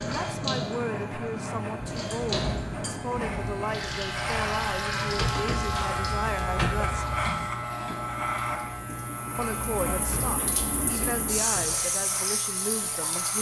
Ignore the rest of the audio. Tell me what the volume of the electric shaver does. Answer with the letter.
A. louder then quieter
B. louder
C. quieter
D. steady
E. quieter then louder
A.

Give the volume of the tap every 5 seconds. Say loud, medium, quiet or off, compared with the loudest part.
loud, medium, loud.